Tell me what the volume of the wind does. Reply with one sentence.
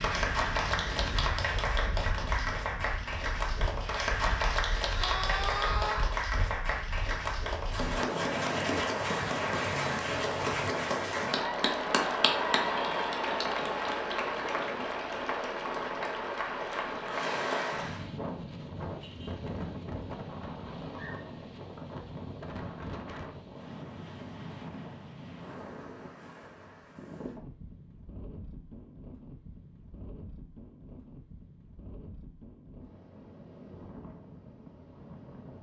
The volume of the wind goes up, then down.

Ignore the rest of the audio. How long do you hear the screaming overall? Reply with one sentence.
The screaming can be heard for 2 seconds in total.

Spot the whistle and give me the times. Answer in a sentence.
The whistle can't be heard in this clip.